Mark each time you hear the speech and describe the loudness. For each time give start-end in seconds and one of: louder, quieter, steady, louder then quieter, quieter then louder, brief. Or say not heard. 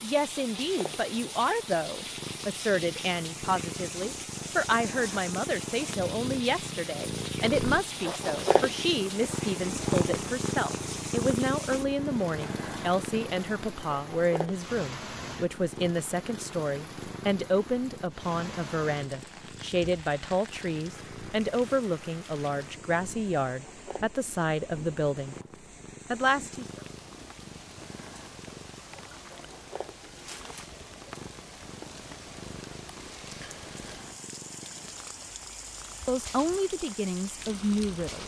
0.0-25.4 steady
26.1-26.6 brief
36.0-38.2 brief.